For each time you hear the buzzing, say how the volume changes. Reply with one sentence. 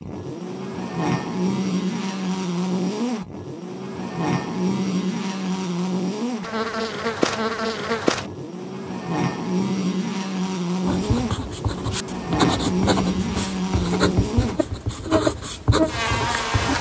You can hear the buzzing from 0.0 to 16.7 s, at a steady volume.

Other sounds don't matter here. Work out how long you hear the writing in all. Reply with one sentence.
You can hear the writing for 6 seconds altogether.